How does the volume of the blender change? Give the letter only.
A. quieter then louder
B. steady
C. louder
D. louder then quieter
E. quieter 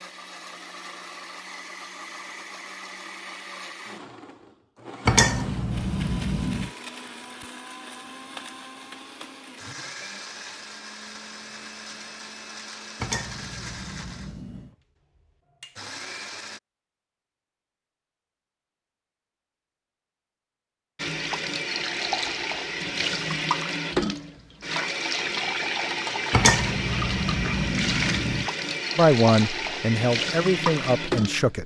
B.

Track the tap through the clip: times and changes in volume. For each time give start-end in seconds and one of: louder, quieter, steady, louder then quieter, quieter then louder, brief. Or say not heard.
20.9-31.6 steady.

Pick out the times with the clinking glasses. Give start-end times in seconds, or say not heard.
5.0-6.7, 13.0-14.7, 26.3-28.5.